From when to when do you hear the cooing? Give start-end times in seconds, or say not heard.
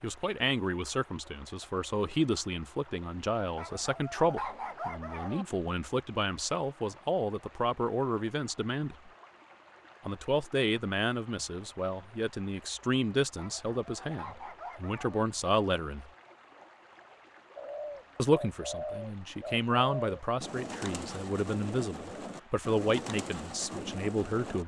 17.6-24.6.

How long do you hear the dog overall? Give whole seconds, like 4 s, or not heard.
4 s.